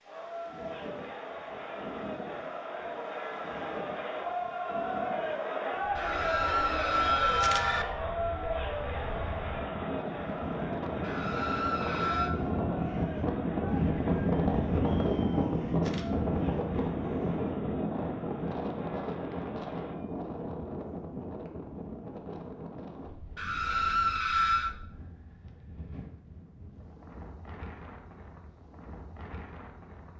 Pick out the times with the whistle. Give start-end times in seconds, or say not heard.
not heard.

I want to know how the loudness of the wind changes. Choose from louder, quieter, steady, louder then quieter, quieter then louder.
louder then quieter.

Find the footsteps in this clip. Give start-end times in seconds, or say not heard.
not heard.